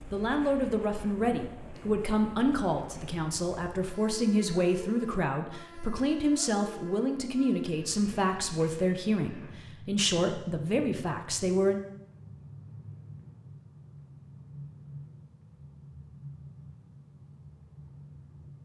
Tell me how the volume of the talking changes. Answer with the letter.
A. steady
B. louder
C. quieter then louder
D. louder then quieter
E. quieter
A.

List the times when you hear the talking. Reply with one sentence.
You can hear the talking from 0.1 to 11.8 s.